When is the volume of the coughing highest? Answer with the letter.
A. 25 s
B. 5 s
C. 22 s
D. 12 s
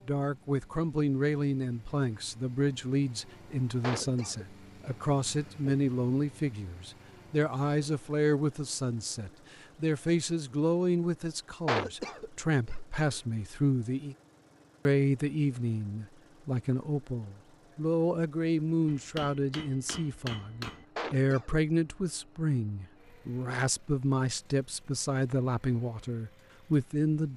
D.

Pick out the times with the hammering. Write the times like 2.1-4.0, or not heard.
18.9-20.9.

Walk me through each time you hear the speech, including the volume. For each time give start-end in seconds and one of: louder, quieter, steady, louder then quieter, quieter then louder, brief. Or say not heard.
0.1-14.2 steady
14.8-27.3 steady.